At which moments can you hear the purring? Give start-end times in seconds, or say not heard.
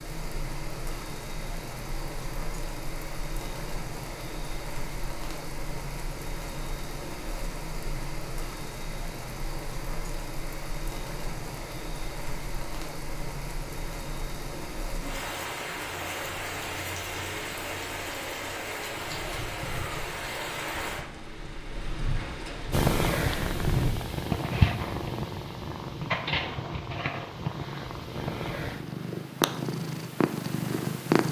22.7-31.2.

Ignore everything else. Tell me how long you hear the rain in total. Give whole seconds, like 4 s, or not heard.
24 s.